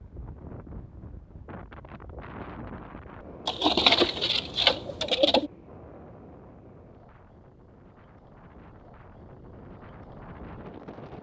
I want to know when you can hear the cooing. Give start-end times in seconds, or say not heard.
3.5-5.5.